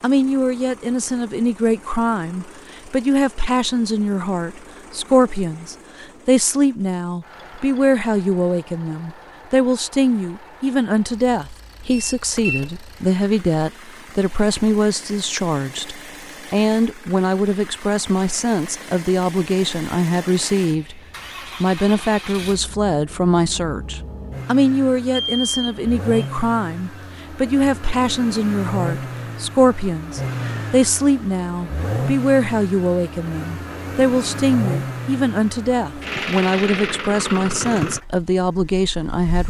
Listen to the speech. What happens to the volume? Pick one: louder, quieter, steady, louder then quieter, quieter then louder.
steady.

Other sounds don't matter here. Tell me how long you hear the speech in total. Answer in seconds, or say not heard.
39 s.